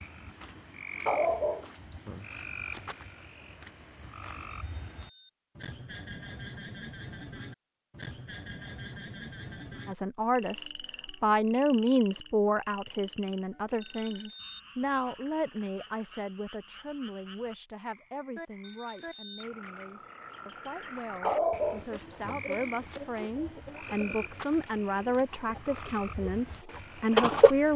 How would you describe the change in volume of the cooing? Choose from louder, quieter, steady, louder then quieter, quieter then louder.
quieter then louder.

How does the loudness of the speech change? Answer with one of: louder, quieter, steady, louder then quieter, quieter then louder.
quieter then louder.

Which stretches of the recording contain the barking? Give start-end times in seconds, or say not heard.
1.1-2.8, 21.2-23.0.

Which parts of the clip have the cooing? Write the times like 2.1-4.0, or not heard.
21.8-27.5.